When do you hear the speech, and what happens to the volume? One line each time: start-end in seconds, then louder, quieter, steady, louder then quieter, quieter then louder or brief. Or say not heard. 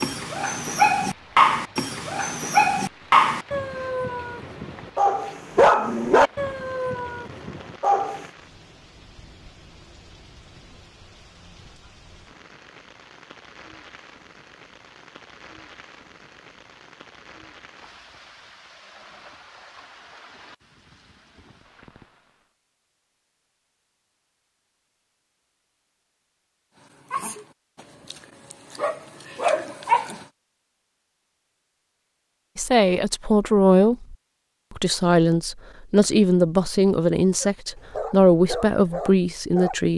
32.5-39.9 steady.